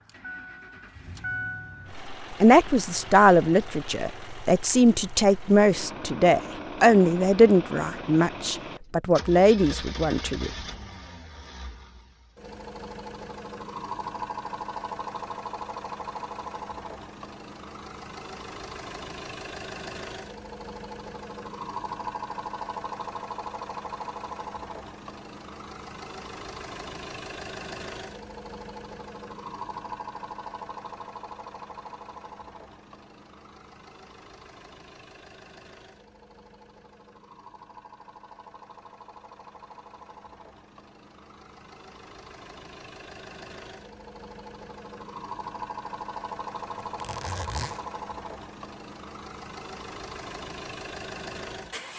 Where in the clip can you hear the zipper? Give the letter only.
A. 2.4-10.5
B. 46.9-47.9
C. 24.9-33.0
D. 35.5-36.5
B.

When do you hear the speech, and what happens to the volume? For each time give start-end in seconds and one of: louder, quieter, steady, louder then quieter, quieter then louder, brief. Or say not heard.
2.4-10.5 steady.